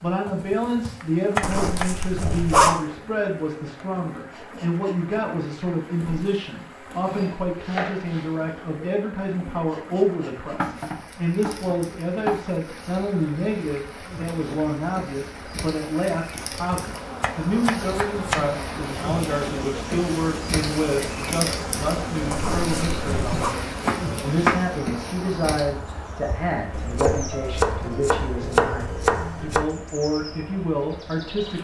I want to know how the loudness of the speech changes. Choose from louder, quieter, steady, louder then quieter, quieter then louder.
steady.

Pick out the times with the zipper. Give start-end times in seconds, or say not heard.
1.4-2.8, 22.3-23.6.